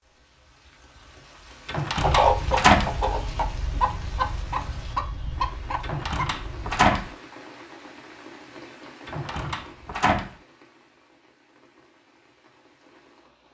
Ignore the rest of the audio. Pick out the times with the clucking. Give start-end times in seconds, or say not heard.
1.9-6.9.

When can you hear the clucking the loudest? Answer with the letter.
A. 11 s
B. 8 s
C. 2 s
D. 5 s
C.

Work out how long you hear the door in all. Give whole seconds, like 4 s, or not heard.
4 s.